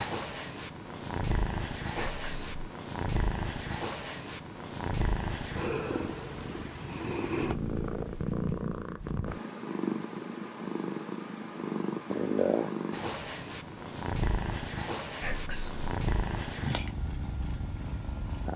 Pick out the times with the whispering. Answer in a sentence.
You can hear the whispering from 1.9 to 2.6 s and from 15.2 to 15.9 s.